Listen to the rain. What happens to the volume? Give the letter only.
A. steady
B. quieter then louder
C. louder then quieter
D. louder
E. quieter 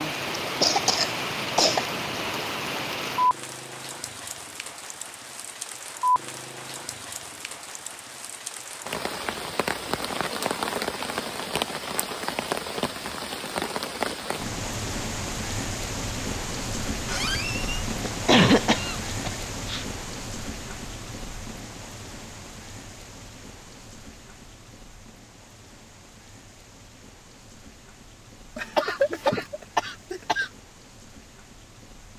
E.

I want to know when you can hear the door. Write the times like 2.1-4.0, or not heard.
17.1-17.9.